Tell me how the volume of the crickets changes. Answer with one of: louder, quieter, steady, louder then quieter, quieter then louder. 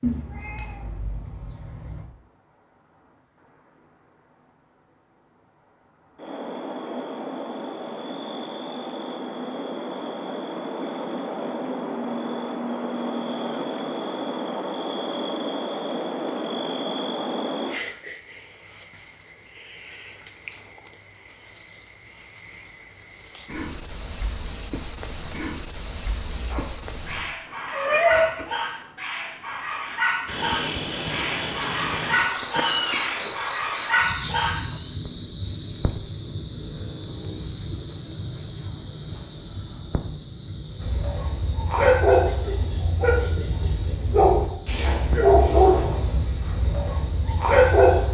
louder then quieter.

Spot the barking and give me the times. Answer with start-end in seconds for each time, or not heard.
26.3-34.6, 40.8-48.0.